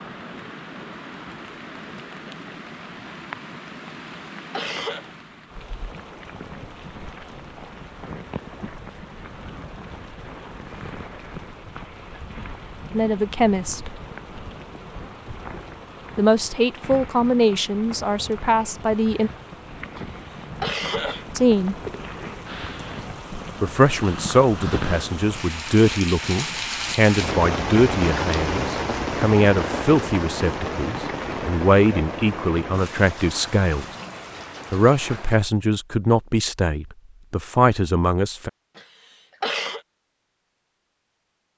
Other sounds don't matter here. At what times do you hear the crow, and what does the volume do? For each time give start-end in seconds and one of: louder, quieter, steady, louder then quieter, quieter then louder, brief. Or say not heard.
not heard.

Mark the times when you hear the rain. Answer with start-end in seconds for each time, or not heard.
0.0-35.4.